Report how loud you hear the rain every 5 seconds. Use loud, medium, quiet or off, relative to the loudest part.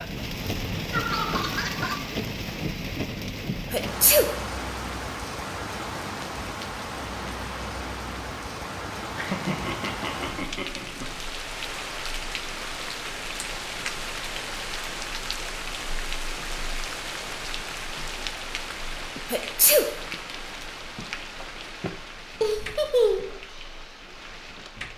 loud, loud, loud, loud, medium.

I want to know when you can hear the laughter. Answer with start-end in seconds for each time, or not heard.
0.9-2.1, 9.2-11.1, 22.4-23.4.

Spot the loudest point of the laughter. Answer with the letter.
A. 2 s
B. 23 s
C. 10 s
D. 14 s
B.